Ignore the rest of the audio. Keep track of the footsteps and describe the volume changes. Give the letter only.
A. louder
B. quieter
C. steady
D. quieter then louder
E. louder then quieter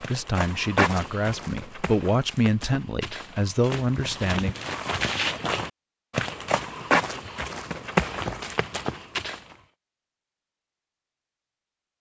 D.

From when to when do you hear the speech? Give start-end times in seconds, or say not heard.
0.1-4.5.